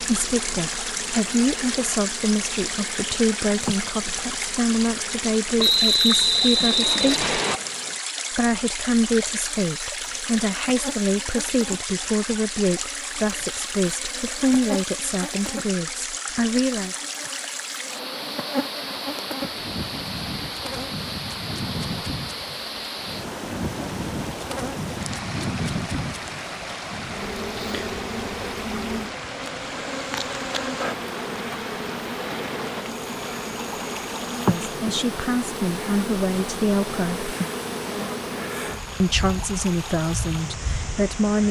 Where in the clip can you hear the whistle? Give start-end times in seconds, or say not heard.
5.5-7.6.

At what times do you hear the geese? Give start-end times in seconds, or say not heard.
not heard.